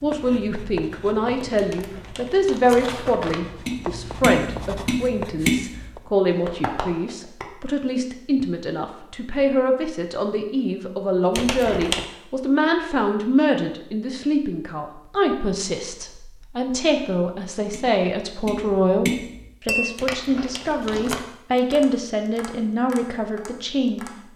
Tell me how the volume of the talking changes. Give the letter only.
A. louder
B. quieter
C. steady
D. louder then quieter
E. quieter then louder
C.